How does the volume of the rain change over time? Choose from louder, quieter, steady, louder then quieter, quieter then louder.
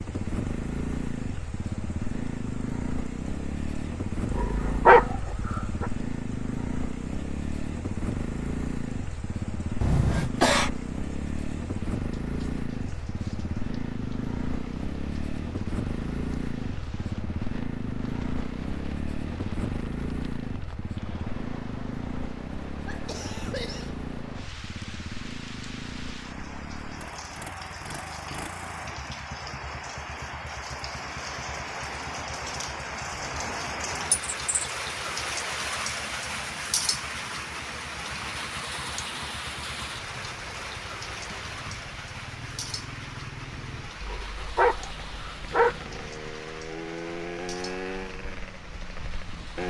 louder then quieter.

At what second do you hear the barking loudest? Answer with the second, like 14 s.
5 s.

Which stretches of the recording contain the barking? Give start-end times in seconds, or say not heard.
4.2-5.8, 44.0-46.0.